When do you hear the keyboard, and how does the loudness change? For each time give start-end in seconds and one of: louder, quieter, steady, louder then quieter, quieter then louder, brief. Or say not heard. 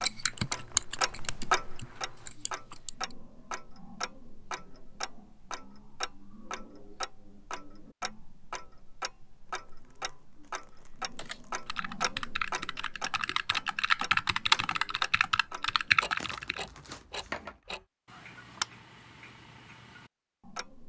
0.0-2.9 brief
11.2-16.6 louder.